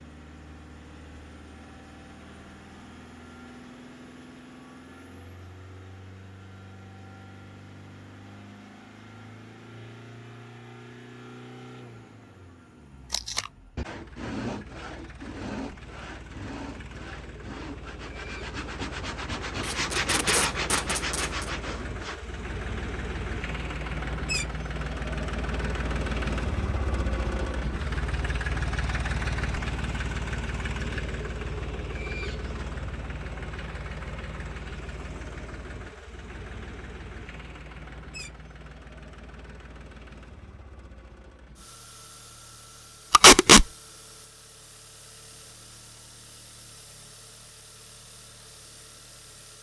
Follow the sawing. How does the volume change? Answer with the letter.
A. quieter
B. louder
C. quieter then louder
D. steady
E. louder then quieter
C.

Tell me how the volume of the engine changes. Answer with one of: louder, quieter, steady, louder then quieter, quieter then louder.
louder then quieter.